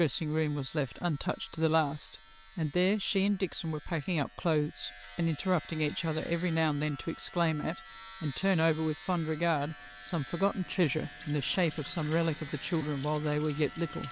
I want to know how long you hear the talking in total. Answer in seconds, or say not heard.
14 s.